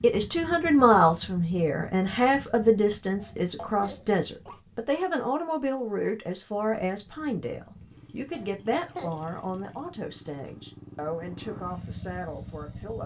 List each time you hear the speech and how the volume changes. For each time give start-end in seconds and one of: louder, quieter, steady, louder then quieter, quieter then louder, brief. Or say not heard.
0.0-13.0 quieter.